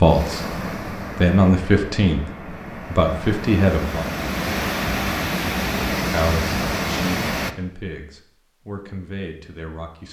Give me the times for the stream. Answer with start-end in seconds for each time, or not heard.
0.0-7.5.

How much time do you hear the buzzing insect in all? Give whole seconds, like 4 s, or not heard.
not heard.